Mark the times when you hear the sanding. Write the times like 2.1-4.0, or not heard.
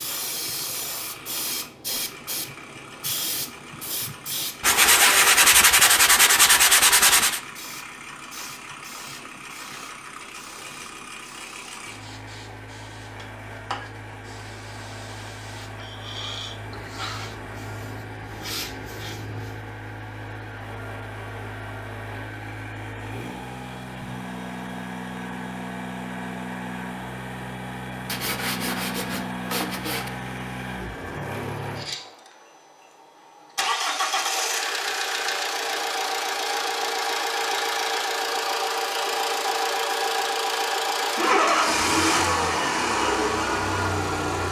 4.6-7.4, 28.1-30.1.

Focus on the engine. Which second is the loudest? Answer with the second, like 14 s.
42 s.